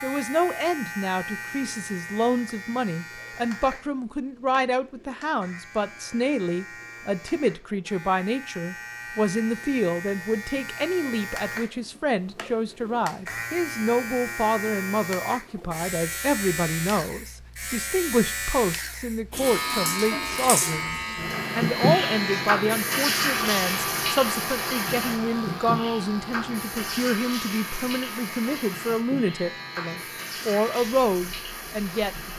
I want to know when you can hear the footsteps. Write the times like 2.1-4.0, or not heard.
not heard.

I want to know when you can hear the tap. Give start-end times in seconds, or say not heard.
19.3-32.3.